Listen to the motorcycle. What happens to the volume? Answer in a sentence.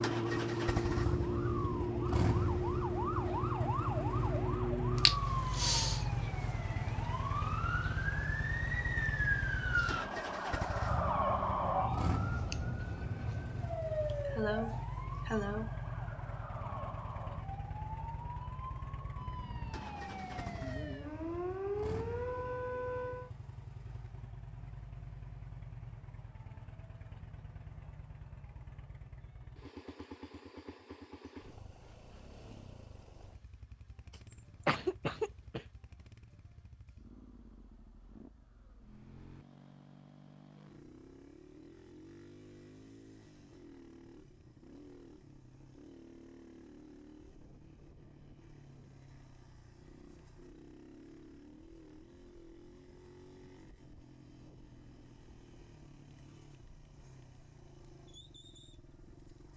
The loudness of the motorcycle goes down.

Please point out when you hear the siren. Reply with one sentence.
The siren can be heard from 0.0 to 23.3 s.